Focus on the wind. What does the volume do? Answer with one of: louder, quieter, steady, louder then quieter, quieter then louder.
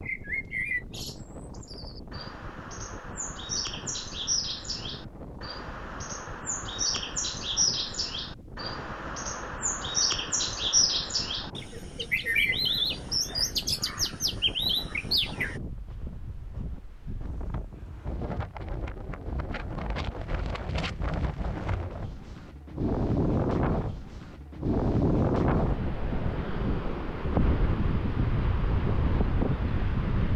louder.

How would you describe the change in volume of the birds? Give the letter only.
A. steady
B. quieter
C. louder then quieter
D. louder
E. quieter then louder
D.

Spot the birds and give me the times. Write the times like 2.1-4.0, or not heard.
0.0-15.6.